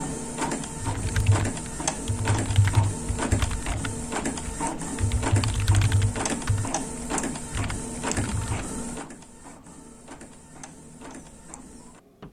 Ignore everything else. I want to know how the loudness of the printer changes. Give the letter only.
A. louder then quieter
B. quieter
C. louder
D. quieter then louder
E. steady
B.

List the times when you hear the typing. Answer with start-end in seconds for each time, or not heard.
0.8-8.7.